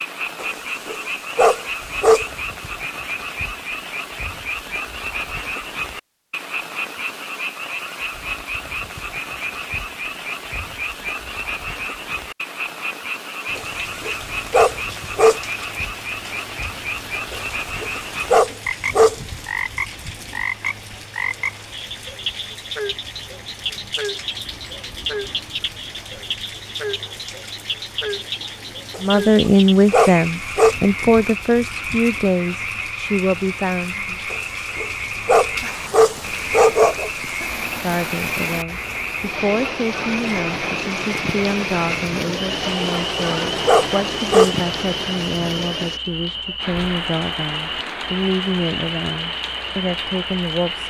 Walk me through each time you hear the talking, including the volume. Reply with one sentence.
You can hear the talking from 29.0 to 34.2 s, getting quieter; and from 37.8 to 50.8 s, at a steady volume.